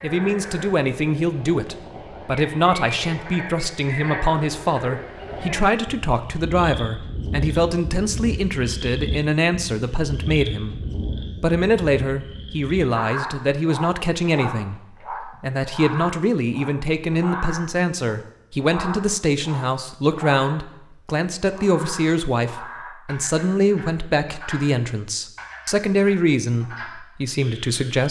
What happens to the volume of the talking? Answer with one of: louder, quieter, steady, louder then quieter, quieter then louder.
steady.